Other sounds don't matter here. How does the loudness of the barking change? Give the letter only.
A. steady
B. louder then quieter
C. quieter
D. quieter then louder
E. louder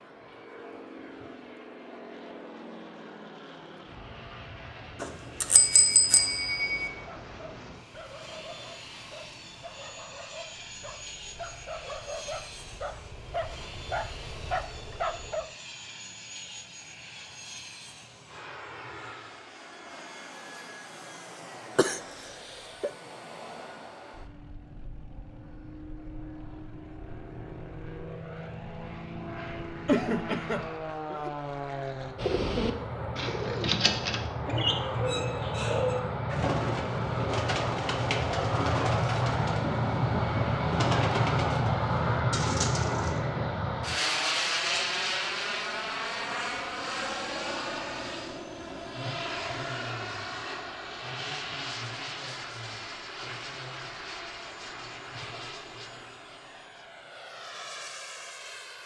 E.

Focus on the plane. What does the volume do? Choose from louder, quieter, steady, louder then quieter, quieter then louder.
louder then quieter.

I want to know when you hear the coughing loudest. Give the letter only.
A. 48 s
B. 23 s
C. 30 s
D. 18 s
C.